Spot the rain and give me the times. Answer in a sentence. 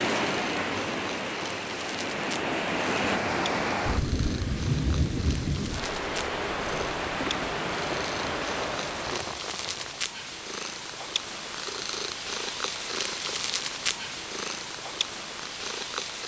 The rain can be heard from 0.0 to 10.1 s.